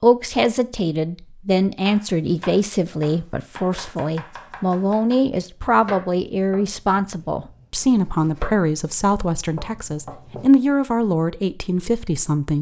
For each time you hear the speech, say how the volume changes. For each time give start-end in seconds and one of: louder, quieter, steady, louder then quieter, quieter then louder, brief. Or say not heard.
0.0-12.5 steady.